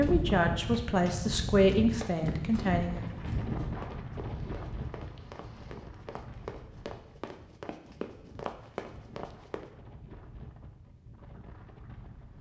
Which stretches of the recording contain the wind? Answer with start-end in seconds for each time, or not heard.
0.0-12.3.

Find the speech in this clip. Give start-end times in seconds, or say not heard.
0.0-3.0.